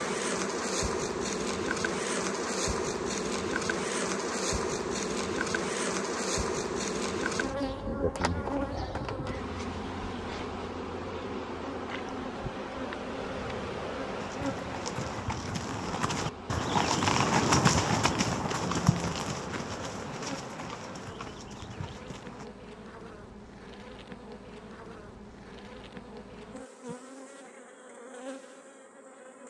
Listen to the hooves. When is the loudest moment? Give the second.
18 s.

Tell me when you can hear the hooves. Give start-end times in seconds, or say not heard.
14.1-22.5.